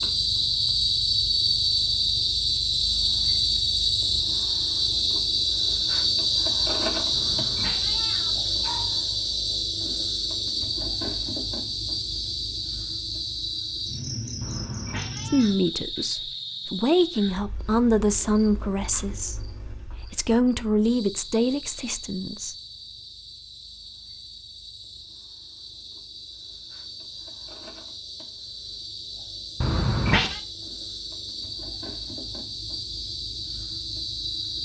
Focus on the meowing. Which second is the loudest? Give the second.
30 s.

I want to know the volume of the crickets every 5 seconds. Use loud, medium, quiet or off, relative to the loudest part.
loud, loud, medium, quiet, quiet, quiet, medium.